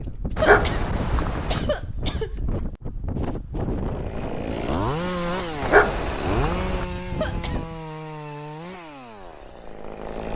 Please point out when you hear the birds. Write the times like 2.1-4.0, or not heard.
not heard.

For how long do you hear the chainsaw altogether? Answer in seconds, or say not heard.
7 s.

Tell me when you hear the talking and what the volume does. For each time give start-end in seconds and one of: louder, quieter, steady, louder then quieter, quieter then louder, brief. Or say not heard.
not heard.